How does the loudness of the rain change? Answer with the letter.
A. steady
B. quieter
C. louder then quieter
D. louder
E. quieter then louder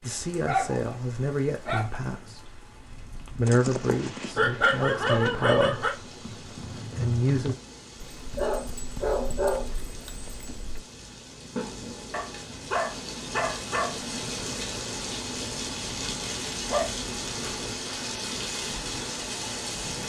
D.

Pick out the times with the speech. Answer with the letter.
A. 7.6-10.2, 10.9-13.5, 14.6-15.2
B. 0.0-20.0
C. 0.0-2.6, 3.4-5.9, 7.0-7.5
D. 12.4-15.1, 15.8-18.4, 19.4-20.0
C.